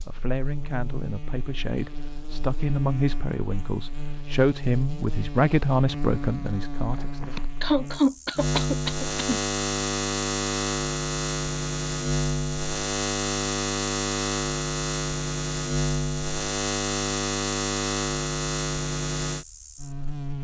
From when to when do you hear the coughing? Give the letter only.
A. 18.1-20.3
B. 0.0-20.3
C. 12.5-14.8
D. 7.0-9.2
D.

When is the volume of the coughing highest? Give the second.
8 s.